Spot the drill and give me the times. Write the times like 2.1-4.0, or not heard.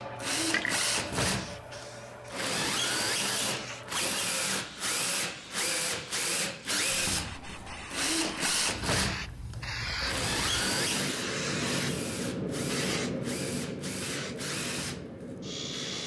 0.0-16.0.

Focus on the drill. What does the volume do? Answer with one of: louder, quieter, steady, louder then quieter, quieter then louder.
quieter.